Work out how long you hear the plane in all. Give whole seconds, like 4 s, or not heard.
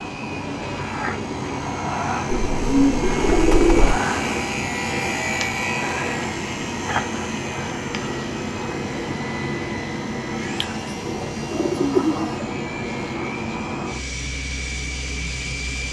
16 s.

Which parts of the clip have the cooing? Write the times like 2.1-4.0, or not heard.
2.2-4.0, 10.6-12.4.